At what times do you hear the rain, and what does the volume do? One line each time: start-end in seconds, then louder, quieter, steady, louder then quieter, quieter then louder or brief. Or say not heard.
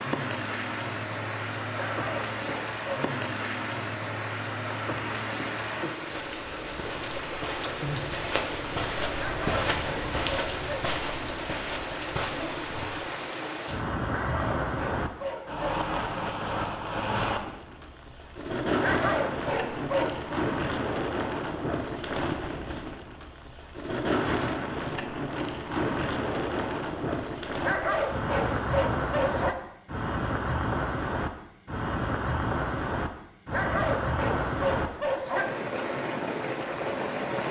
0.0-37.4 steady.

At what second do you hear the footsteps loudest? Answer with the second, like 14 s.
10 s.